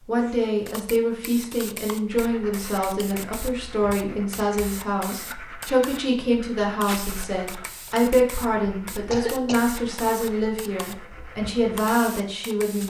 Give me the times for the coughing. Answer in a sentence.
You can hear the coughing from 8.5 to 9.6 s.